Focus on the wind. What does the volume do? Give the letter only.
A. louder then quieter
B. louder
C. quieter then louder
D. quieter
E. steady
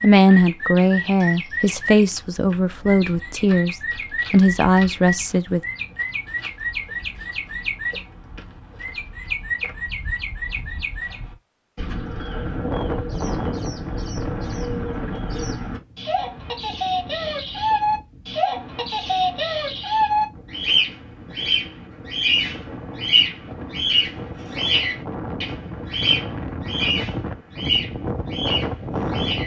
C.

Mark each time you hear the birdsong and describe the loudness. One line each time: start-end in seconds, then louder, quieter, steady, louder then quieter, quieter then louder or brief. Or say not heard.
0.0-29.4 louder.